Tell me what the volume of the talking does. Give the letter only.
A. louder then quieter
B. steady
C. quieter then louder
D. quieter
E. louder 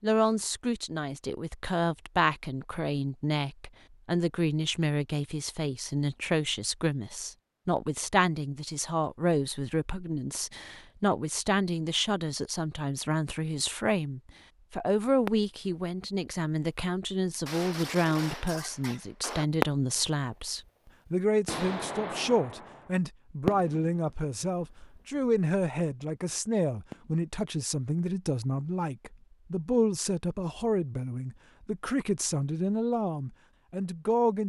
B.